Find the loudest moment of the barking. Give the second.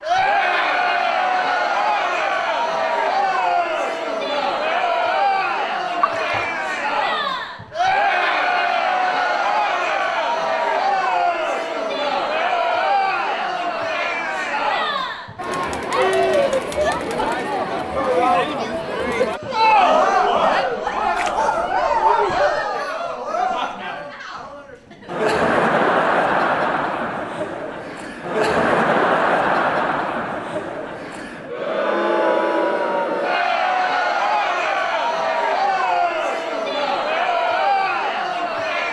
22 s.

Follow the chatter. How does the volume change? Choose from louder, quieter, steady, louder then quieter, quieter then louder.
steady.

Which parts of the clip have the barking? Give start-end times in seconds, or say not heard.
20.9-22.4.